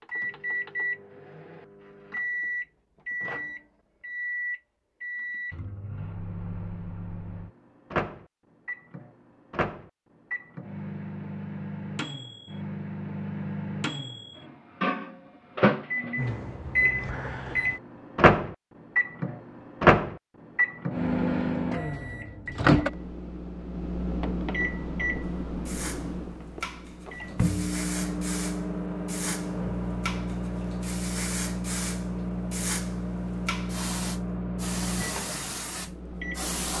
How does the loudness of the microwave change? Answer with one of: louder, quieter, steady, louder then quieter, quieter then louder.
louder then quieter.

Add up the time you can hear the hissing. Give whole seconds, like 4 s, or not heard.
11 s.